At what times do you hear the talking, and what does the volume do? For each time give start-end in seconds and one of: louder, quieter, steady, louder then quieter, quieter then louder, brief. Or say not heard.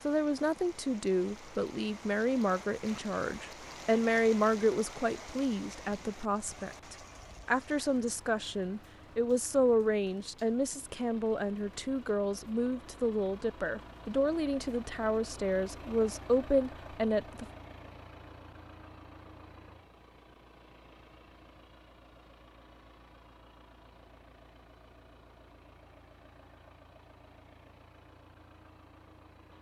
0.1-17.4 steady.